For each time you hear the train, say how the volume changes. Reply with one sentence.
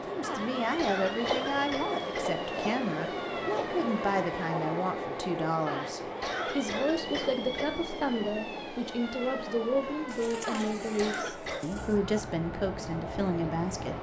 You can hear the train from 0.0 to 13.9 s, getting quieter.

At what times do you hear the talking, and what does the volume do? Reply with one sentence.
You can hear the talking from 0.1 to 13.9 s, at a steady volume.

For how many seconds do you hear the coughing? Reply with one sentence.
The coughing can be heard for 5 seconds in total.